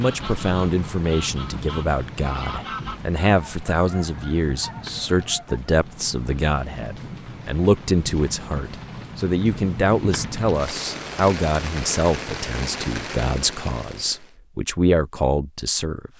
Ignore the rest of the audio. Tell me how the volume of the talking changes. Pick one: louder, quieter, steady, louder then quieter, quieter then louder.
steady.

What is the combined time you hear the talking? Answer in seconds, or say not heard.
16 s.